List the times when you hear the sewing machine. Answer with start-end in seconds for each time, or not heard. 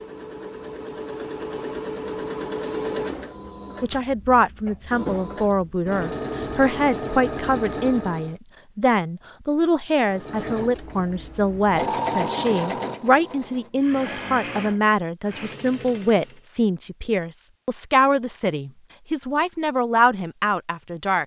0.0-8.3, 10.1-16.4.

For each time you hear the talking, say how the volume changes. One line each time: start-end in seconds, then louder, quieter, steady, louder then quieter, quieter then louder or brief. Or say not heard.
3.8-21.2 steady.